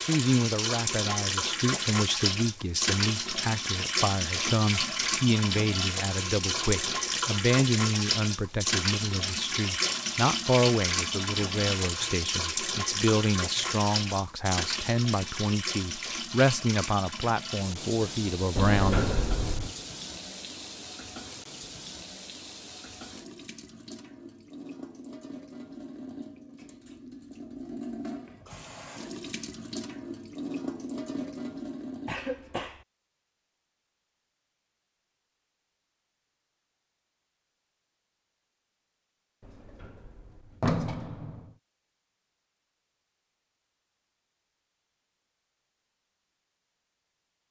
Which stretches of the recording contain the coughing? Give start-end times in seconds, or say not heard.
32.0-32.9.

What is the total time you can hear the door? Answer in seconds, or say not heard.
3 s.